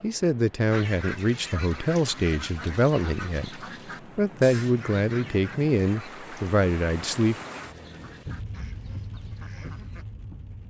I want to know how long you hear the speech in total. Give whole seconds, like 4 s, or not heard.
7 s.